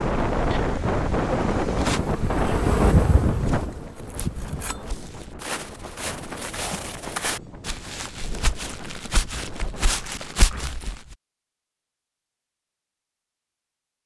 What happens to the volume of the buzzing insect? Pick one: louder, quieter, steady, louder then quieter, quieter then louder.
louder then quieter.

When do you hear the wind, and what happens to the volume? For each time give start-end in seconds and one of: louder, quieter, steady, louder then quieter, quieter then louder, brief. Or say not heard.
0.0-10.7 quieter.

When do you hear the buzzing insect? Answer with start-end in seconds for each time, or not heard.
0.0-4.9.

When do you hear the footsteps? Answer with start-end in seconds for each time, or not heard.
3.4-10.9.